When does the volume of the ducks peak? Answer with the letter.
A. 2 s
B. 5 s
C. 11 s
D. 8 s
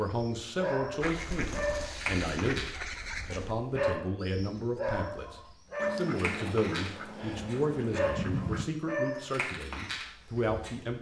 D.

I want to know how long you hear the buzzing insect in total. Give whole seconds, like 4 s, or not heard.
not heard.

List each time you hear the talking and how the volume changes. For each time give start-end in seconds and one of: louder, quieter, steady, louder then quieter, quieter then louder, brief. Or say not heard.
0.0-10.9 steady.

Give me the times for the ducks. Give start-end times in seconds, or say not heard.
1.0-3.5, 5.8-8.7.